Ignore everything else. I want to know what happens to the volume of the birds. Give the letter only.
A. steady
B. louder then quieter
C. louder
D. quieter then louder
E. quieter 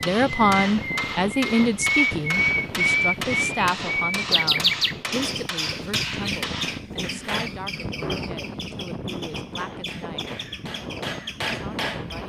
E.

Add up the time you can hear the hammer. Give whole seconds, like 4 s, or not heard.
10 s.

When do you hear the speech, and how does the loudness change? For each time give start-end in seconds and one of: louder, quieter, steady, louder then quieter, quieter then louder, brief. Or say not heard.
0.0-10.3 quieter
11.5-12.2 brief.